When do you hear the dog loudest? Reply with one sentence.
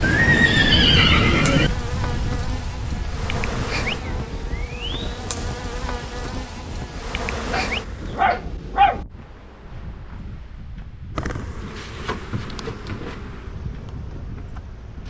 The volume of the dog peaks at 9 seconds.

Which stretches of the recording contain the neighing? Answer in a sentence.
The neighing can be heard from 0.0 to 1.7 s.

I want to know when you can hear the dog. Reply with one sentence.
The dog can be heard from 7.3 to 9.1 s.